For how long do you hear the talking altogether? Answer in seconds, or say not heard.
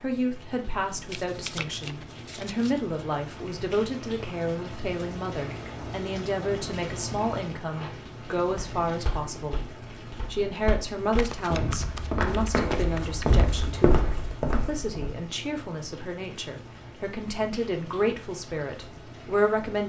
20 s.